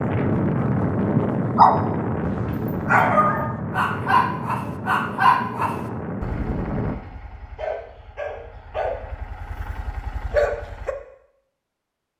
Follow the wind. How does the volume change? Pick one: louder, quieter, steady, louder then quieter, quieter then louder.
quieter.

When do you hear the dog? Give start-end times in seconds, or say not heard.
0.8-10.9.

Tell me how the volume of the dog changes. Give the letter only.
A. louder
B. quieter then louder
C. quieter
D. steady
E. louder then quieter
B.